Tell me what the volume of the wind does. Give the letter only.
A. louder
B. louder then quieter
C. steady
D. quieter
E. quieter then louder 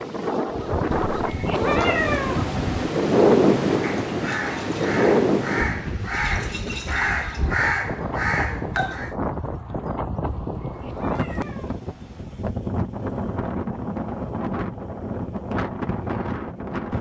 D.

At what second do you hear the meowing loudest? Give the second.
2 s.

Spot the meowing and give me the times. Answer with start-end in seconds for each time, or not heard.
0.9-2.9, 10.2-12.2.